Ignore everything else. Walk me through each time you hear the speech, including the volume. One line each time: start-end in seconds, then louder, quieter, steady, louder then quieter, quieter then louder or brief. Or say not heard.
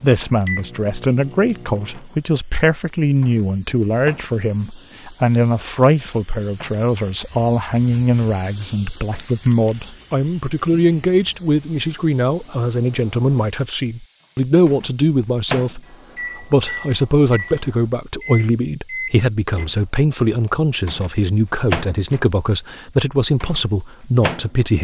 0.0-24.7 steady.